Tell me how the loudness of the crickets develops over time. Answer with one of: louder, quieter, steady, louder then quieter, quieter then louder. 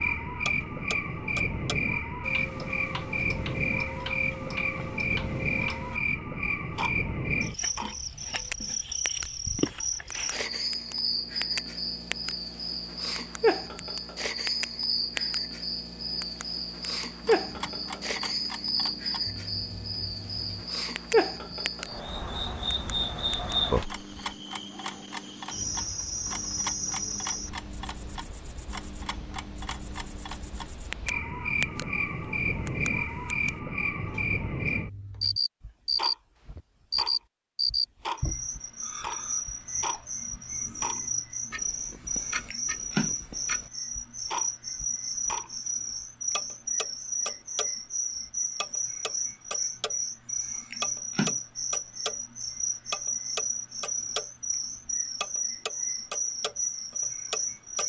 steady.